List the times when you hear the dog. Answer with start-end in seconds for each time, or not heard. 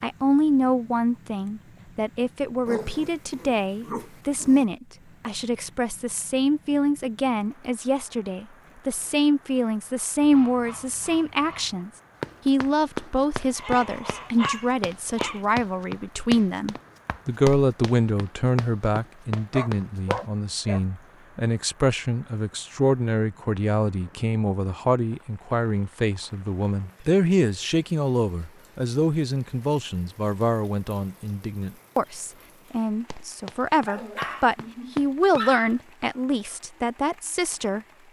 2.6-4.7, 13.6-15.4, 19.4-20.8, 33.9-35.8.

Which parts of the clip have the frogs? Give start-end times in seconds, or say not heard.
not heard.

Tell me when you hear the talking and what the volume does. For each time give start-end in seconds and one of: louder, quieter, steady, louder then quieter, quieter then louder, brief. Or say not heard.
0.0-38.0 steady.